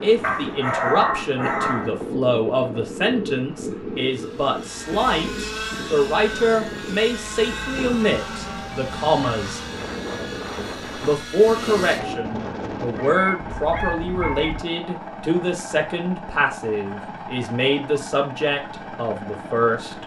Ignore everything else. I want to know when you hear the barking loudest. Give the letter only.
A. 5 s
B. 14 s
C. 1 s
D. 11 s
C.